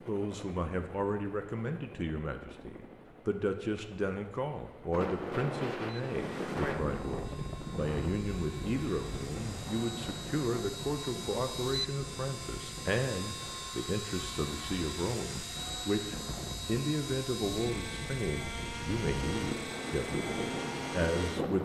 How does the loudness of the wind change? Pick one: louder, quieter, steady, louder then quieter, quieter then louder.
quieter then louder.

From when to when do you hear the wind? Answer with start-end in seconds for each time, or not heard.
4.9-21.5.